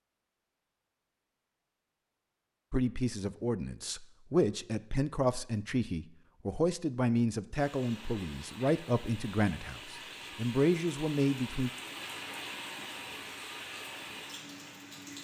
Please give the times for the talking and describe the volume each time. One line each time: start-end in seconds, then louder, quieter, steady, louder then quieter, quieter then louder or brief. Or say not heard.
2.7-11.7 steady.